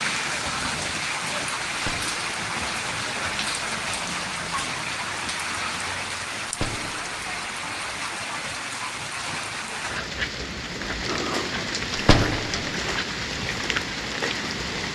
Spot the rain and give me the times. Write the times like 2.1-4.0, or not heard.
0.0-14.9.